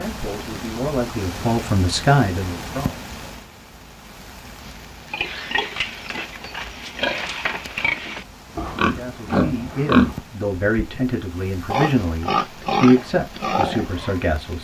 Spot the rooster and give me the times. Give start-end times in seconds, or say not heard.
not heard.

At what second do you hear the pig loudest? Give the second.
10 s.